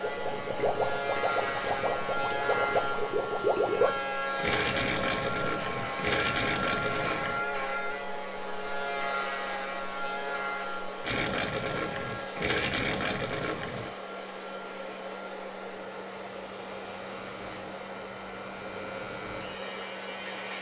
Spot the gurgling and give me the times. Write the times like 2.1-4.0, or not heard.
0.0-7.4, 11.0-13.9.